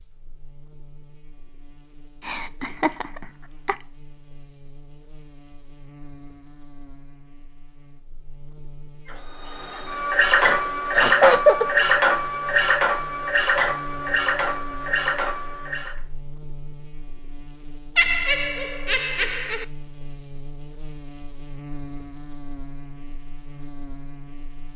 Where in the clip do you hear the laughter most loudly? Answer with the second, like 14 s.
11 s.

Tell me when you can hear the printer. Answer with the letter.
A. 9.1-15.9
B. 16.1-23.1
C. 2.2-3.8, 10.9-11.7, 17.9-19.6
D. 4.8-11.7
A.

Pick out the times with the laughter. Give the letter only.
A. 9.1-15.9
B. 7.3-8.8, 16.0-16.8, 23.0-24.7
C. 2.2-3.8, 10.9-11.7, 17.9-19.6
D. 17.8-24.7
C.